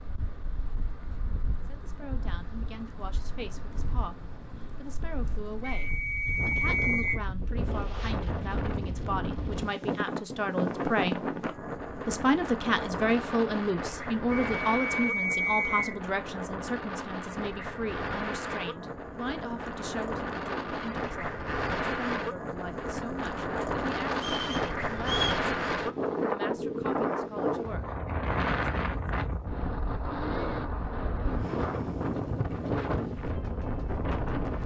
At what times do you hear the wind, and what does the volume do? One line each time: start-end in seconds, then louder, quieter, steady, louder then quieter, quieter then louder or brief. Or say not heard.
0.0-34.6 louder.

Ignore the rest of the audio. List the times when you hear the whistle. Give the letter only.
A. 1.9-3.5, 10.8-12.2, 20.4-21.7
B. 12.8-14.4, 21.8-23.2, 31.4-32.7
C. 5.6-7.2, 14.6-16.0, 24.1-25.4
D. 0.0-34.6
C.